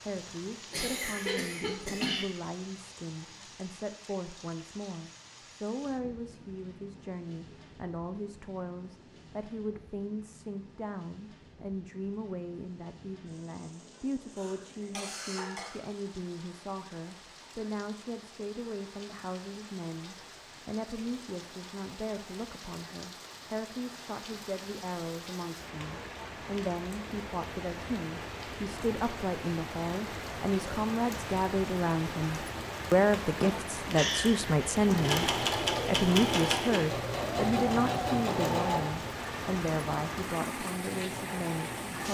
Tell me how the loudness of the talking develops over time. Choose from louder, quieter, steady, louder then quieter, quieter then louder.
louder.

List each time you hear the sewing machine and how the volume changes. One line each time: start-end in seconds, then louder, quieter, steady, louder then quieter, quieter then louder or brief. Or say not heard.
34.9-42.0 quieter.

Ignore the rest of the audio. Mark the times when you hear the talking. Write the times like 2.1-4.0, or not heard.
0.0-42.0.